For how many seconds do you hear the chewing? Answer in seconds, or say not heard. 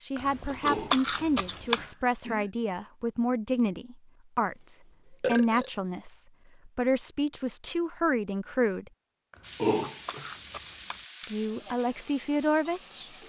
3 s.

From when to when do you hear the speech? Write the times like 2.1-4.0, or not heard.
0.0-8.9, 11.2-13.1.